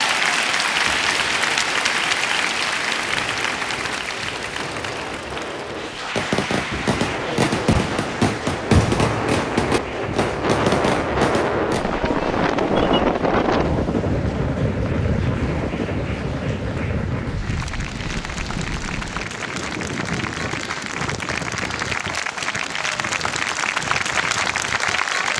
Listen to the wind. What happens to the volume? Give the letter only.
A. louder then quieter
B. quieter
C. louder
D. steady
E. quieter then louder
A.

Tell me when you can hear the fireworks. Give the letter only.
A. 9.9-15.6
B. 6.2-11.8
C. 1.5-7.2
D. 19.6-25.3
B.